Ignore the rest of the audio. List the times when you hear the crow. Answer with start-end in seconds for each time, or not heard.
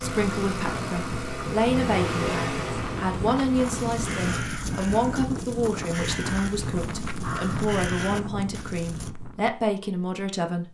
3.5-9.1.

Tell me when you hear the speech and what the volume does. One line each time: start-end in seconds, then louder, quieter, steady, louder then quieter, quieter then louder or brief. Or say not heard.
0.0-10.6 steady.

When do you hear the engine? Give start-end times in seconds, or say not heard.
0.0-4.4.